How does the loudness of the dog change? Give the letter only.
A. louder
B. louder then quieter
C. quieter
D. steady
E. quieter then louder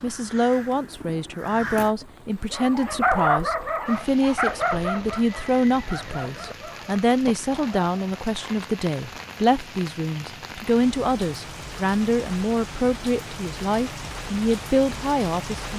C.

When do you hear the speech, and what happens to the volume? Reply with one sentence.
You can hear the speech from 0.0 to 15.7 s, at a steady volume.